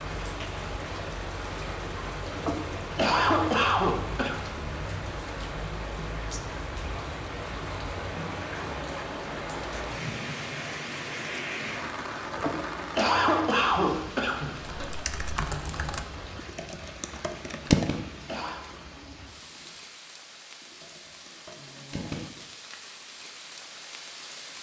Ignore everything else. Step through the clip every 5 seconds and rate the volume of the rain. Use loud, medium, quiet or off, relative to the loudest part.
loud, loud, loud, medium, medium.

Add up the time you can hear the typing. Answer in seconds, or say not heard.
7 s.